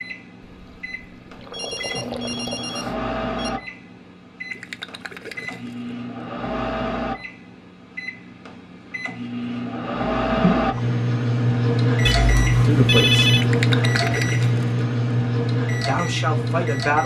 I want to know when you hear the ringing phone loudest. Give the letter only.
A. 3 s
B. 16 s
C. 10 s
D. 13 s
D.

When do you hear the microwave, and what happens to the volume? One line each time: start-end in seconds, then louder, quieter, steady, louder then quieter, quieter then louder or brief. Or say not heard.
0.0-17.0 louder.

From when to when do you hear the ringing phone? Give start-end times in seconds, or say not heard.
1.5-3.5, 12.1-13.5.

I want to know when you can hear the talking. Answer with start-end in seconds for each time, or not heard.
12.6-13.2, 15.8-17.0.